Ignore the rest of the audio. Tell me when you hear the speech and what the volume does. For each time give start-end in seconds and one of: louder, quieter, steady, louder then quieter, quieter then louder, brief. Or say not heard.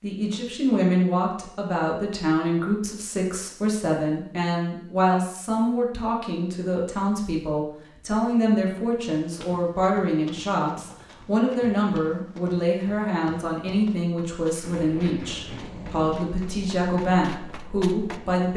0.0-18.5 steady.